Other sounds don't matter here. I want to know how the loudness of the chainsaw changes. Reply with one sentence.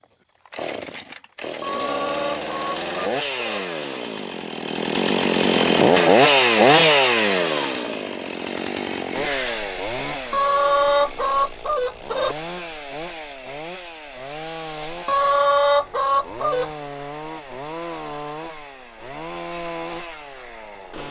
The loudness of the chainsaw goes up, then down.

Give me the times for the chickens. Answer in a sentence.
You can hear the chickens from 1.6 to 3.6 s, from 10.3 to 12.3 s and from 15.1 to 16.7 s.